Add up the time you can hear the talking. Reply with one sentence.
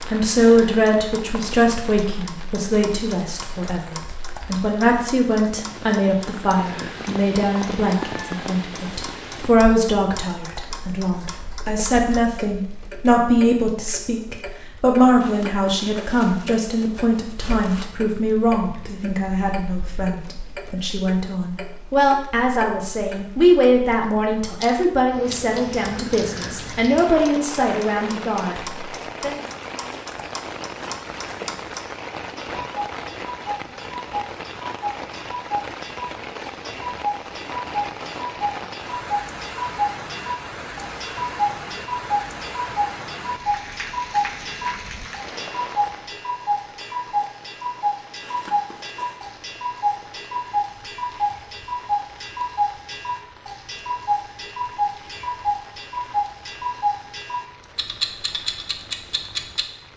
You can hear the talking for 29 seconds altogether.